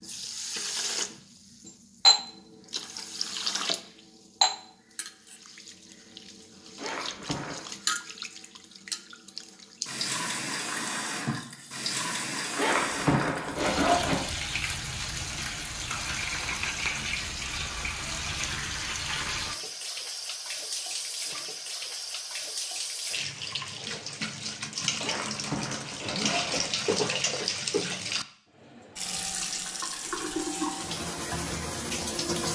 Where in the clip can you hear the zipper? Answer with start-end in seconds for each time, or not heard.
6.8-7.8, 12.6-14.2, 25.0-26.7.